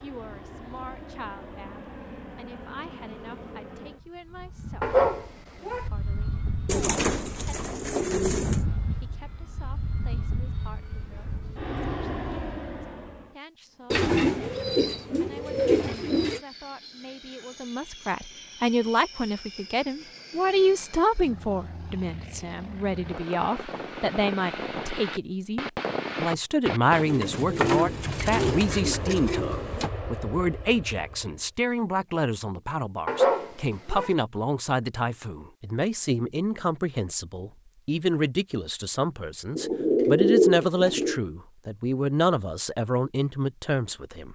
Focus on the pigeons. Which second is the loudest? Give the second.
40 s.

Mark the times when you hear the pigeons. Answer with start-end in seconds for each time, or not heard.
6.7-8.6, 13.9-16.4, 26.9-29.9, 39.5-41.2.